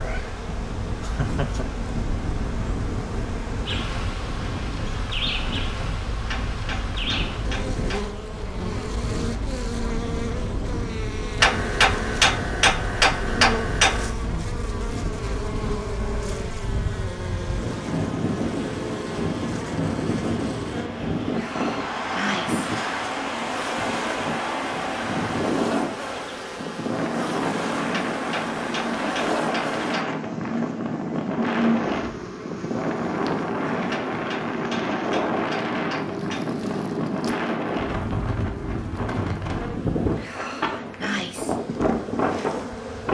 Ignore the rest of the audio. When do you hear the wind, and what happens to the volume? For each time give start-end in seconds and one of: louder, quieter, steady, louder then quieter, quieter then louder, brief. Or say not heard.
0.1-43.0 louder.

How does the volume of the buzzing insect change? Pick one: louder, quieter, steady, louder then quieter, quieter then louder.
steady.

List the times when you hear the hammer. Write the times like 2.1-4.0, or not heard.
6.2-8.1, 11.4-14.2, 27.9-30.2, 33.9-36.5.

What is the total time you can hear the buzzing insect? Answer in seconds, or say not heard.
43 s.